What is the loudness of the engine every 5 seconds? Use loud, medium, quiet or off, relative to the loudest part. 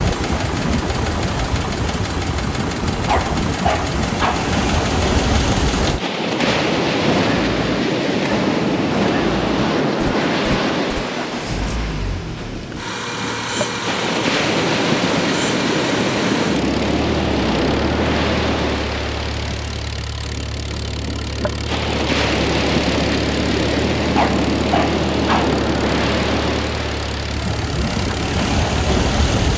loud, loud, loud, loud, medium, medium.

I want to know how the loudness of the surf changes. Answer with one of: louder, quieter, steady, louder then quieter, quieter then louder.
steady.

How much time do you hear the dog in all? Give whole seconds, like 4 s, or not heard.
3 s.